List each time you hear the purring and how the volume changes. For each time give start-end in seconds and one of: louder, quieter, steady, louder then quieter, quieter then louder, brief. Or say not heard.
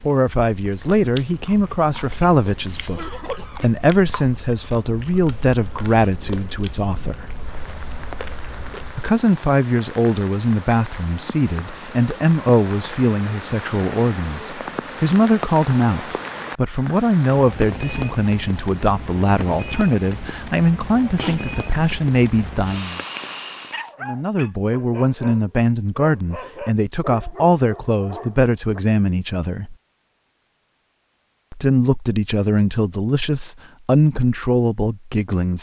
not heard.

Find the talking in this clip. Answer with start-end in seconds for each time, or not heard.
0.0-7.3, 8.9-23.0, 24.0-29.8, 31.5-35.5.